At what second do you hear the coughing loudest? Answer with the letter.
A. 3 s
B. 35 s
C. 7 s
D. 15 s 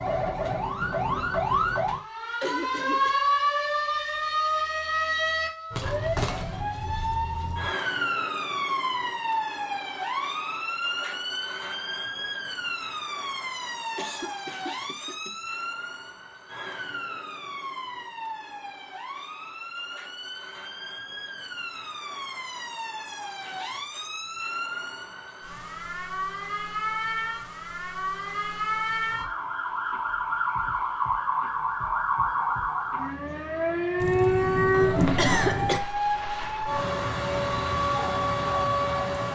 B.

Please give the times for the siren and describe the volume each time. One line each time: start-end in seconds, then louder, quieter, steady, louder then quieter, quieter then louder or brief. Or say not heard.
0.0-39.2 quieter then louder.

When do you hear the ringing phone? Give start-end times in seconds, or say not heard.
34.7-35.6.